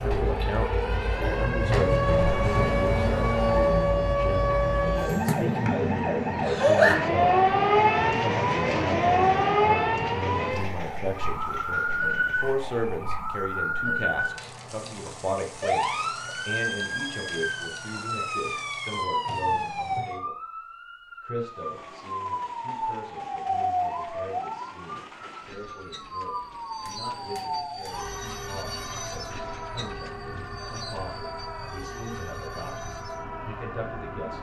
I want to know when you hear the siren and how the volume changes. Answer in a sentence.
You can hear the siren from 0.0 to 34.3 s, getting quieter.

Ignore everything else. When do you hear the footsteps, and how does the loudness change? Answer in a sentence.
The footsteps can't be heard in this clip.